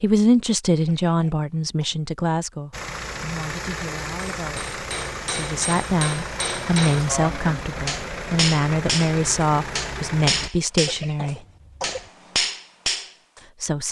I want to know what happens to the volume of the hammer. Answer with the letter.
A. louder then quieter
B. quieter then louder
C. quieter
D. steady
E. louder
E.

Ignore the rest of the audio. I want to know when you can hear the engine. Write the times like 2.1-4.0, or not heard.
2.7-10.5.